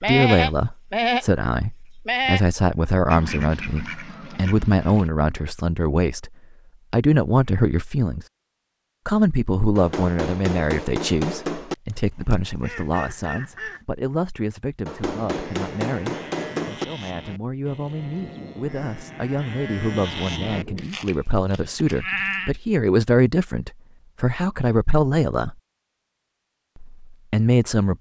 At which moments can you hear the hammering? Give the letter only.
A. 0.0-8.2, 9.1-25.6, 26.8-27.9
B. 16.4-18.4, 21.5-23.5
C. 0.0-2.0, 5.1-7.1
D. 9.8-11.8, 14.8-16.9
D.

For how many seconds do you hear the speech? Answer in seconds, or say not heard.
26 s.